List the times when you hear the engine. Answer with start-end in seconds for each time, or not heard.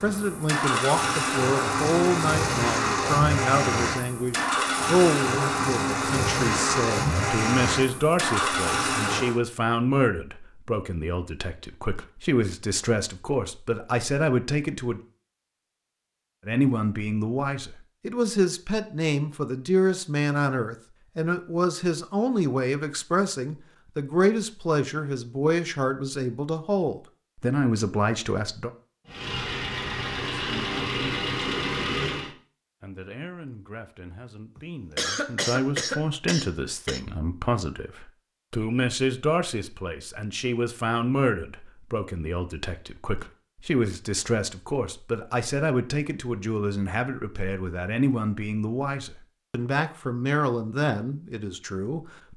0.0-9.4, 29.1-32.3.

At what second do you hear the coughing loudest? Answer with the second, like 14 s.
35 s.